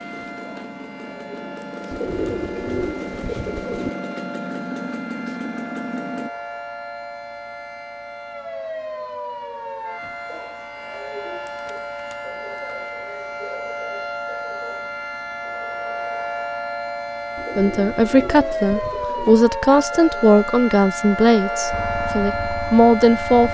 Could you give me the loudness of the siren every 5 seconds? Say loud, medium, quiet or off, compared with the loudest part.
medium, medium, medium, loud, loud.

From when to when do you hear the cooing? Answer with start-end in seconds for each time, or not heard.
1.9-3.9, 17.4-19.4.